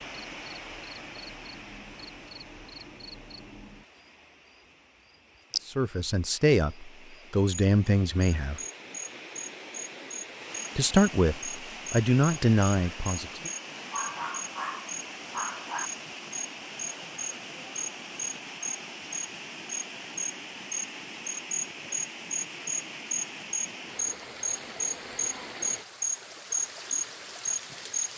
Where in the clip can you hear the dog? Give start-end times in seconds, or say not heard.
13.9-15.9.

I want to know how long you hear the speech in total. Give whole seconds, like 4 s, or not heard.
6 s.